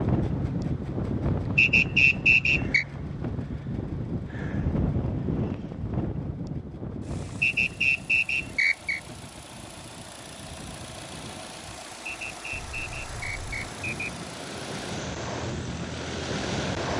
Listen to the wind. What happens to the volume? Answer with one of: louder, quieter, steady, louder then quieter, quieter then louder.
quieter then louder.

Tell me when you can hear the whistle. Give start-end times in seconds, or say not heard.
1.6-2.9, 7.4-9.0, 12.1-14.1.